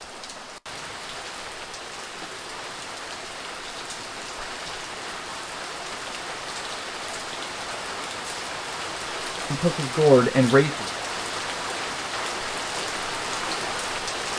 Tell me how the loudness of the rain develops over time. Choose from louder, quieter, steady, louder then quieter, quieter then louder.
louder.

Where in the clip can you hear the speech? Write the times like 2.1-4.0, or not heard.
9.5-10.8.